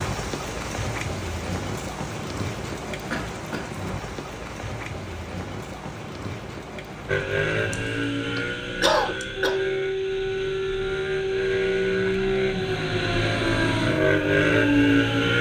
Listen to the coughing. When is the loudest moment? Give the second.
9 s.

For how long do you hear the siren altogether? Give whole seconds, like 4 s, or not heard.
7 s.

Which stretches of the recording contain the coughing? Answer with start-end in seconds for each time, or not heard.
3.1-3.7, 8.3-9.6.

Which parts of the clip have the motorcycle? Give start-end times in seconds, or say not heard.
7.0-15.3.